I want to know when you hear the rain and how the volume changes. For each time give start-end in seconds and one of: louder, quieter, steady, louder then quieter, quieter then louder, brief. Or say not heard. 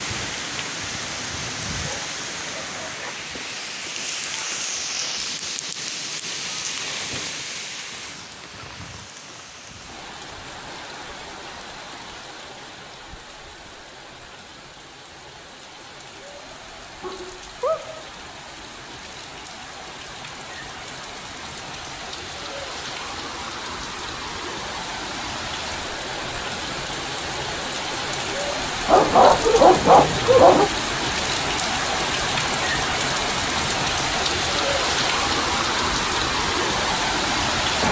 0.0-37.8 quieter then louder.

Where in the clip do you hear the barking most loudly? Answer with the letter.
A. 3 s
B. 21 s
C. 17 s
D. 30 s
D.